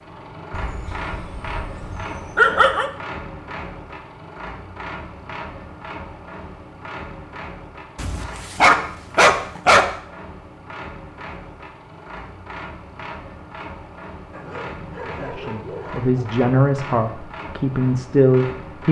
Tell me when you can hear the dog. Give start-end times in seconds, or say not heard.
0.5-2.9, 8.0-9.8, 14.3-16.1.